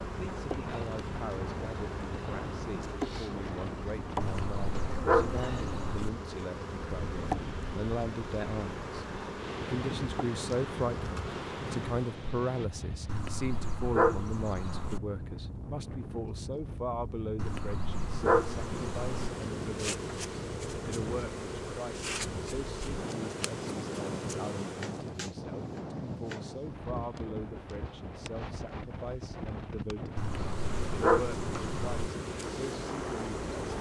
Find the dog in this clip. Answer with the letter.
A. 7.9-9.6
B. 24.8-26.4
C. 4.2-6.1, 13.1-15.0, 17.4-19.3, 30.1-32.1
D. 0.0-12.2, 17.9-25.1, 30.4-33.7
C.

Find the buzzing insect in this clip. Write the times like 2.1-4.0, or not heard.
0.0-12.2, 17.9-25.1, 30.4-33.7.